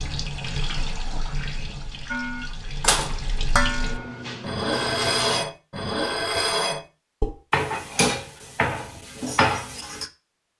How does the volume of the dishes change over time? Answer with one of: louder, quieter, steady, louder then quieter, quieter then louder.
steady.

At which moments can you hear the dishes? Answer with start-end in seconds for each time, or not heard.
2.1-10.1.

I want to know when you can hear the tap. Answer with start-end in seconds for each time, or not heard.
0.0-5.5.